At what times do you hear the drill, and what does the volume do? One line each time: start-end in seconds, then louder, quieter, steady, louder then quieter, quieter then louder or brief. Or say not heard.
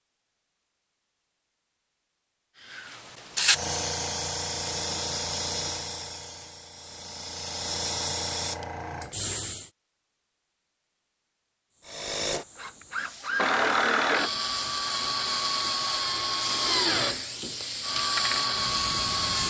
11.8-19.4 steady.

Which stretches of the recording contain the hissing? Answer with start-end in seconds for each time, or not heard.
2.7-9.7, 11.7-19.4.